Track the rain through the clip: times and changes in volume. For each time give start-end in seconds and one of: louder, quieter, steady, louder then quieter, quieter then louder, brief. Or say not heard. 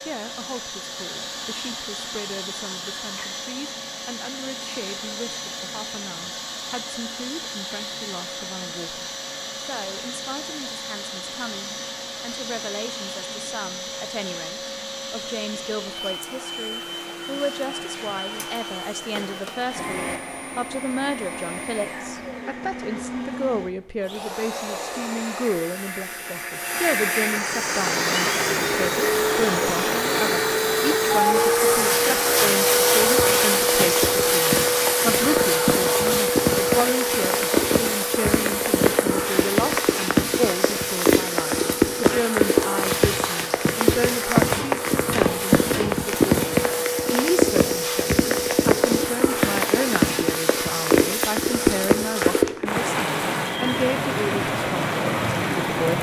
27.6-55.9 louder.